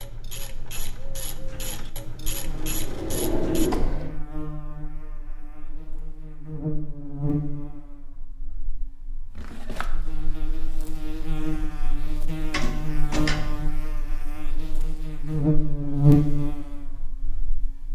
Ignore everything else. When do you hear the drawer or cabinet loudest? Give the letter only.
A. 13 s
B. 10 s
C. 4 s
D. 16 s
C.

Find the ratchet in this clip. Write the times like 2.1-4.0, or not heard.
0.0-3.7.